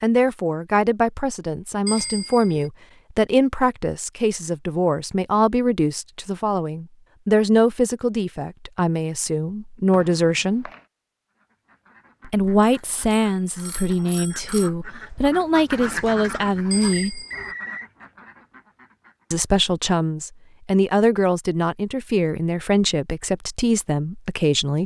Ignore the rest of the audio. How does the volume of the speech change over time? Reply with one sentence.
The volume of the speech stays about the same.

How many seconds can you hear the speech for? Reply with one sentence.
The speech can be heard for 21 seconds in total.